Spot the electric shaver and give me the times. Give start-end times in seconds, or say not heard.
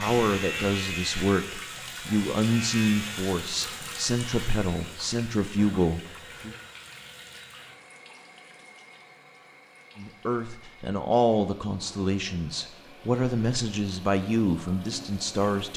0.0-4.7.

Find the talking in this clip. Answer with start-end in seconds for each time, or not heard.
0.0-6.5, 9.9-15.7.